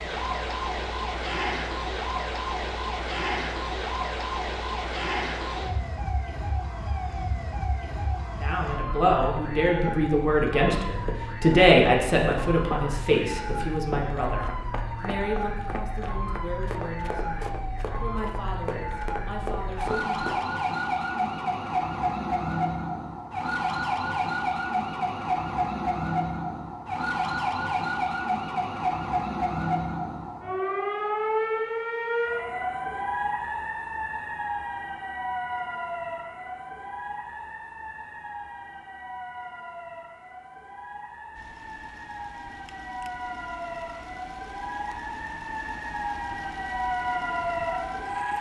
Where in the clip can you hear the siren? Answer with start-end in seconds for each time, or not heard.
0.0-48.3.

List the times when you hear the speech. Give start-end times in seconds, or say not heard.
8.4-20.2.